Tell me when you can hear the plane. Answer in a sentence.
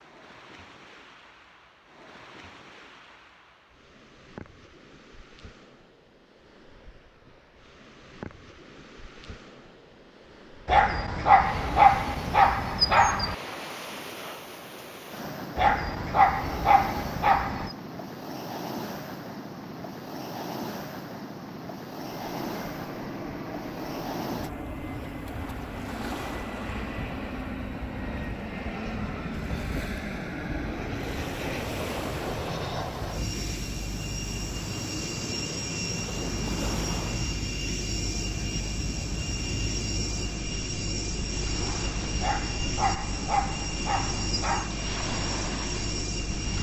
The plane can be heard from 22.2 to 46.5 s.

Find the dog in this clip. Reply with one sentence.
You can hear the dog from 10.7 to 13.3 s, from 15.6 to 17.8 s and from 42.2 to 44.8 s.